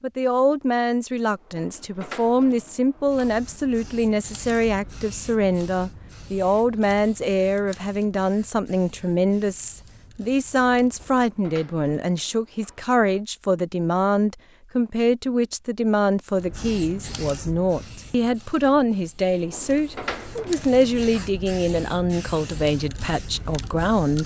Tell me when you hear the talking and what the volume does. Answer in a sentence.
You can hear the talking from 0.0 to 24.2 s, at a steady volume.